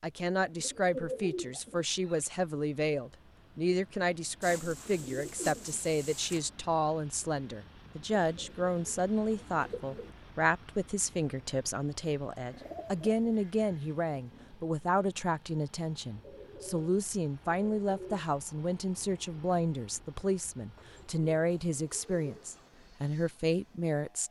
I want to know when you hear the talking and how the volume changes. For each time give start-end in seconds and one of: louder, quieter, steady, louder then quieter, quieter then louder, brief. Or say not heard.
0.0-24.2 steady.